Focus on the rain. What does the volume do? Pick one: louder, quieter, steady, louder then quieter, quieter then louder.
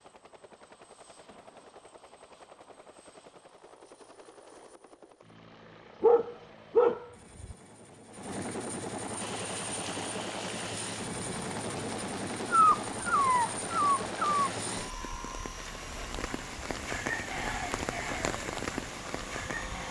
louder.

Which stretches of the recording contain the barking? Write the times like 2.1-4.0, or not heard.
6.0-7.5, 12.5-14.5.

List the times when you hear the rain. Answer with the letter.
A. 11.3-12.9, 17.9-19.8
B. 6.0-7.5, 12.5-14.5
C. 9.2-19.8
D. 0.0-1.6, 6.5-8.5
C.